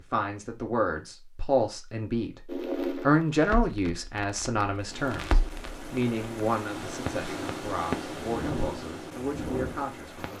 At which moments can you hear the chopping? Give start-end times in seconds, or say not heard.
not heard.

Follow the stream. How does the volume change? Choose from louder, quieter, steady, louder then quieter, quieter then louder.
louder then quieter.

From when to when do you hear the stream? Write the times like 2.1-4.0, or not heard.
4.8-10.3.